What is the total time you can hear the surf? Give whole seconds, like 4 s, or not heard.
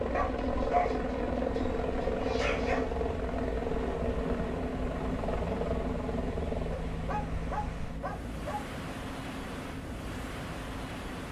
11 s.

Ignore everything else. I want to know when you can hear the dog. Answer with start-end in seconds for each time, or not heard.
0.1-2.9, 6.9-8.7.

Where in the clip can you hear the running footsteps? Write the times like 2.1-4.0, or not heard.
not heard.